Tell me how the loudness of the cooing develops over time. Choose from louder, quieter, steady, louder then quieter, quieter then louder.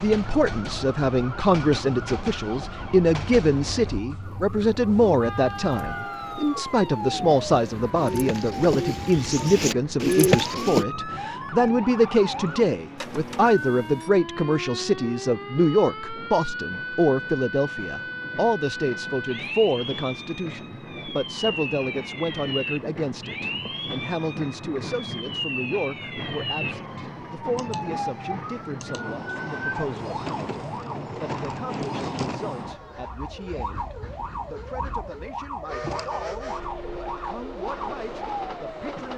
louder.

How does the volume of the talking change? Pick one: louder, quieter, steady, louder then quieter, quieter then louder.
quieter.